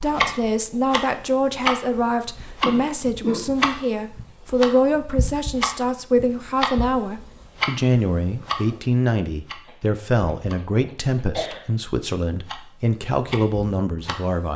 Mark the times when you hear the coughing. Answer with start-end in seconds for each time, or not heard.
2.6-3.5, 9.7-11.7.